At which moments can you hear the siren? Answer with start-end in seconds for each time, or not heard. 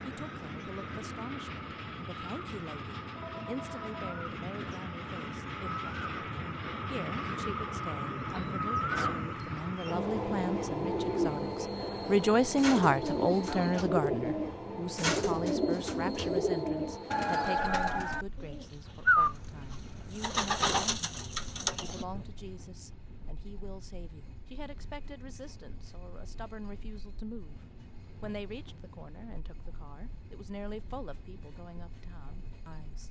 not heard.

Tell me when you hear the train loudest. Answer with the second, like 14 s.
9 s.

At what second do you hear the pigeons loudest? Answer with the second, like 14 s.
19 s.